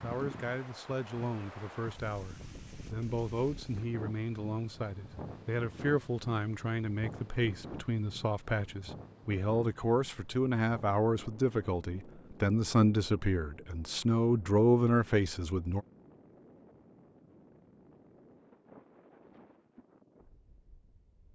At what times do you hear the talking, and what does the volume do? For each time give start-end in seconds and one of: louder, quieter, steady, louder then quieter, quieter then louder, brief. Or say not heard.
0.0-15.8 louder.